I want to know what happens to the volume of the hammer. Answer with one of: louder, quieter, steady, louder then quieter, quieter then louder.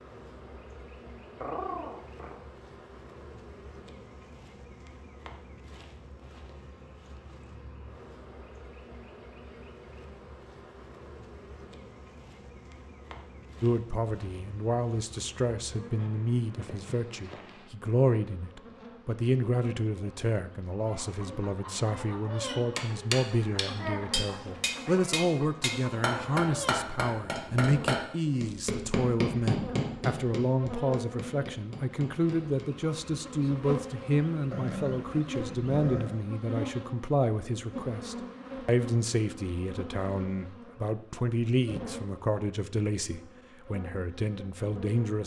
quieter.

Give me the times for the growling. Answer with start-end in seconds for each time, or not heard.
1.4-2.4, 34.5-36.2.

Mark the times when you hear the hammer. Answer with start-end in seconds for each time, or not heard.
22.8-32.9.